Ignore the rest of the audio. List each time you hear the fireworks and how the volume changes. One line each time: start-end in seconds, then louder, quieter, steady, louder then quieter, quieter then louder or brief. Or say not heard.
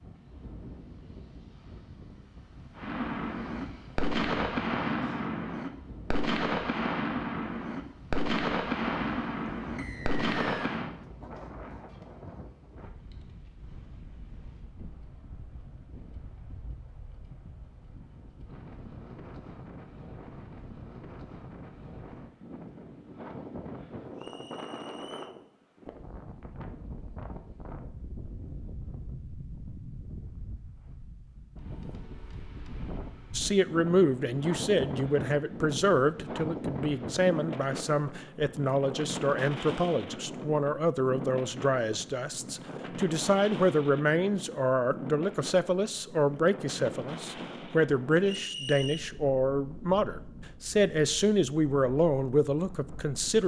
2.8-10.9 steady.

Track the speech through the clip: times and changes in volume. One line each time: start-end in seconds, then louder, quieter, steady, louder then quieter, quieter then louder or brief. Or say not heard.
33.3-53.4 steady.